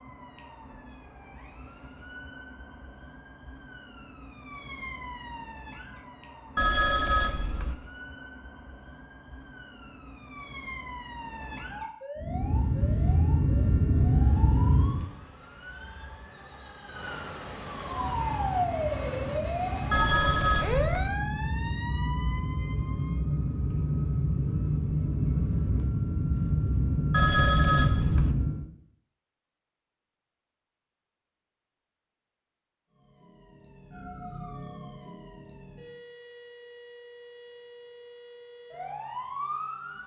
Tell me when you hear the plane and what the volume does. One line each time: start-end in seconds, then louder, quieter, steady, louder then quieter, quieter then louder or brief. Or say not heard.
12.2-15.1 brief
17.8-28.6 louder.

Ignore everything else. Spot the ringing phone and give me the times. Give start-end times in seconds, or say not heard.
6.5-7.8, 19.9-21.1, 27.1-28.4.